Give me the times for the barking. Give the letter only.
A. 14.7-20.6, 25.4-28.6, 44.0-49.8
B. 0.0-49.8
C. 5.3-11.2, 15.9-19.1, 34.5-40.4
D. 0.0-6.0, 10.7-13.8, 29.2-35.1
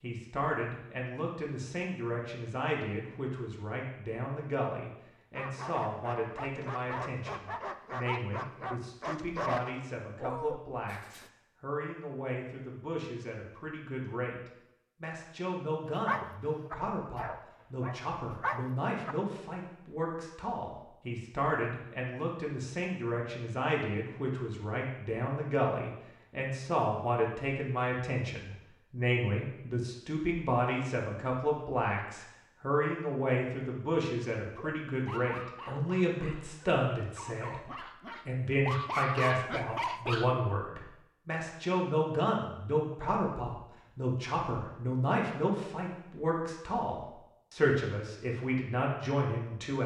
C.